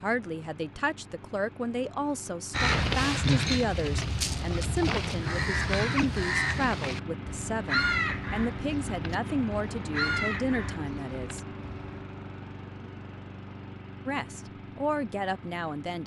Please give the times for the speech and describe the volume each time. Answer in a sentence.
You can hear the speech from 0.0 to 11.4 s, at a steady volume; and briefly from 14.1 to 16.0 s.